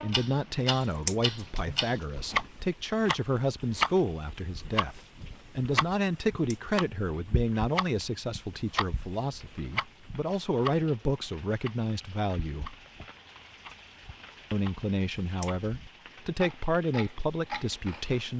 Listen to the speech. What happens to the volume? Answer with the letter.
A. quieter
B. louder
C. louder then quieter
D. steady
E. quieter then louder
D.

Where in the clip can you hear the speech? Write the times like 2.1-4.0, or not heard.
0.0-12.7, 14.5-18.3.